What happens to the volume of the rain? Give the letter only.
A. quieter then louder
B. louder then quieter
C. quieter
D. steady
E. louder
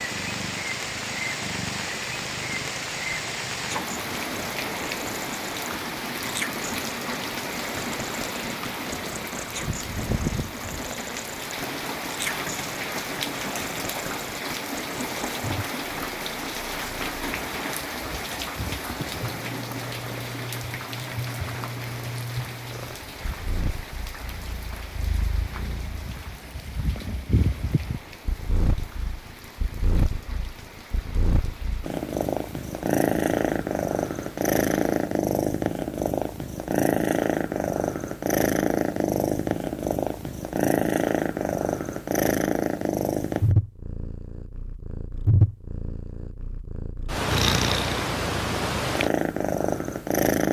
C.